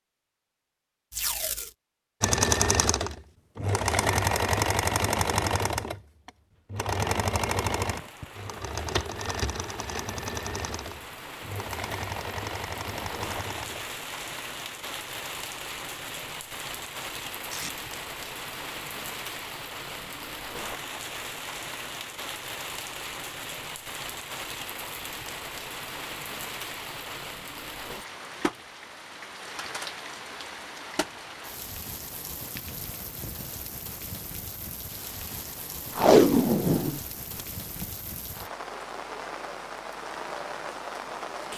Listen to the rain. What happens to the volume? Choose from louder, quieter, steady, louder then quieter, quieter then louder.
steady.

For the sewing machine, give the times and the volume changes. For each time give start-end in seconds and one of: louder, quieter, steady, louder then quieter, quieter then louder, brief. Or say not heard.
2.2-13.8 quieter.